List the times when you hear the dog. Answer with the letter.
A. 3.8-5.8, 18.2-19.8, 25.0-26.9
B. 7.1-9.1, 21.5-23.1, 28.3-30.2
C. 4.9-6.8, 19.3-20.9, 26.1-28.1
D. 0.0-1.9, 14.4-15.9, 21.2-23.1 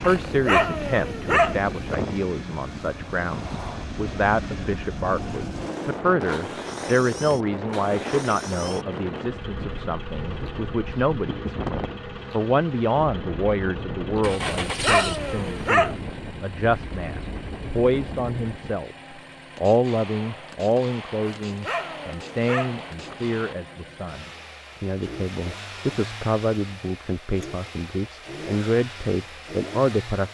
D.